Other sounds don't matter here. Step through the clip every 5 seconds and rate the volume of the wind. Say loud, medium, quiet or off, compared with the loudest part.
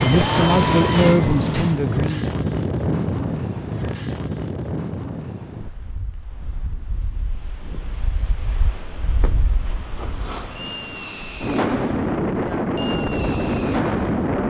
loud, quiet, loud.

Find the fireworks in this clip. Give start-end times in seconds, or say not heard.
0.0-1.8, 9.2-14.3.